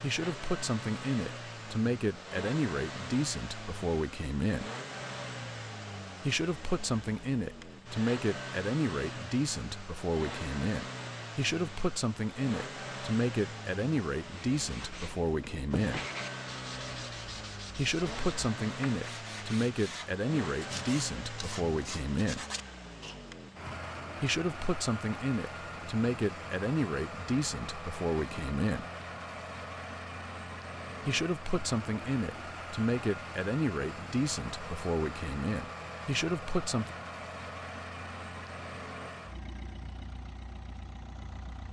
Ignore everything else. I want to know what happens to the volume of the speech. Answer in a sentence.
The volume of the speech stays about the same.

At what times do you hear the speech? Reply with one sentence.
The speech can be heard from 0.0 to 4.7 s, from 6.2 to 16.0 s, from 17.8 to 22.4 s, from 24.2 to 28.9 s and from 31.1 to 37.0 s.